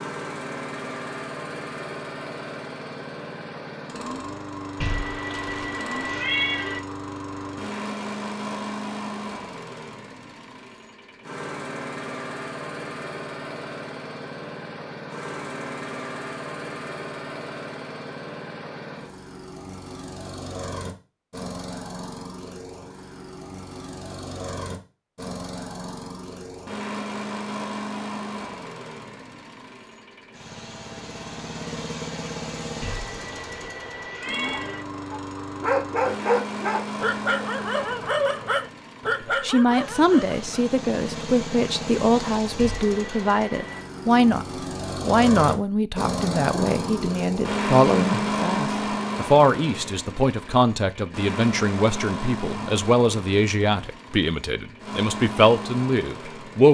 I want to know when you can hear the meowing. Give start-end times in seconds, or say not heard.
4.8-6.8, 32.8-34.9, 42.5-43.9.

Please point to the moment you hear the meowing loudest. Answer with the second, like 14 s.
6 s.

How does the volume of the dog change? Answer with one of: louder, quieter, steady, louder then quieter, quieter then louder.
quieter.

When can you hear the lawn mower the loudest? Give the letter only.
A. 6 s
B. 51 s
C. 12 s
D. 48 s
D.